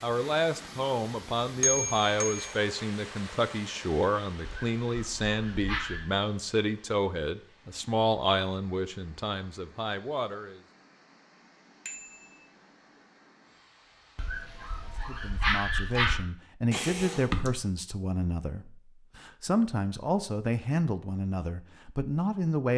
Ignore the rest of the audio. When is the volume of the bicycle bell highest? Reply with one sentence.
The loudest moment of the bicycle bell is at 2 seconds.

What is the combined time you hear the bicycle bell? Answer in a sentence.
You can hear the bicycle bell for 2 seconds altogether.